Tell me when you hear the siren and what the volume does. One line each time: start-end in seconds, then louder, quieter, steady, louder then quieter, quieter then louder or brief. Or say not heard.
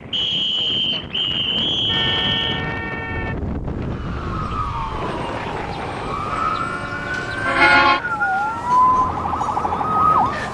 3.7-10.4 louder.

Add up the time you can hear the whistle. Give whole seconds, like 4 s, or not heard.
4 s.